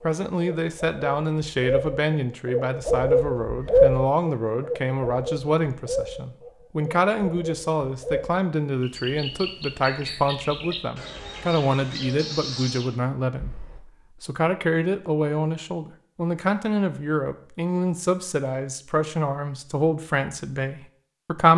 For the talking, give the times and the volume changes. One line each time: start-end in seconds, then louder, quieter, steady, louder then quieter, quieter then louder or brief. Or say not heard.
0.0-21.5 steady.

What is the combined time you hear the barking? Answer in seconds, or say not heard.
not heard.